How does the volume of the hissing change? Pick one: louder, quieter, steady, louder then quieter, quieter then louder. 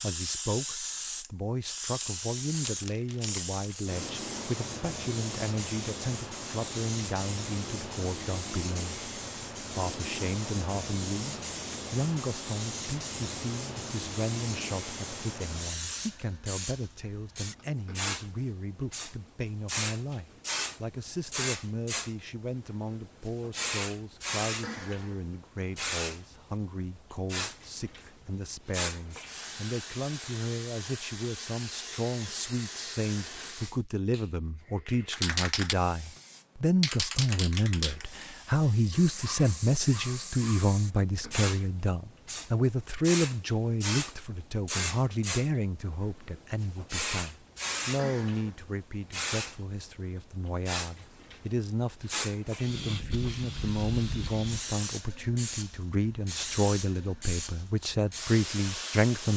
steady.